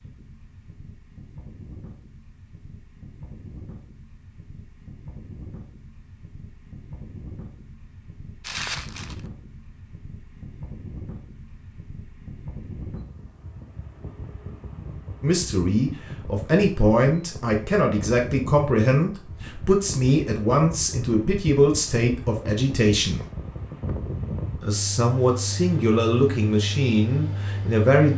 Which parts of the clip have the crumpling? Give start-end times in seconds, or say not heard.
8.4-9.2.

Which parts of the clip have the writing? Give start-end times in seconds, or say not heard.
not heard.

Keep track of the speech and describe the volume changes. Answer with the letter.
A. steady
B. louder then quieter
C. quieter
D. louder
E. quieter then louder
A.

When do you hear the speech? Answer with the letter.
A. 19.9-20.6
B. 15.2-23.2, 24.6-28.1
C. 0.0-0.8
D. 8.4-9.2
B.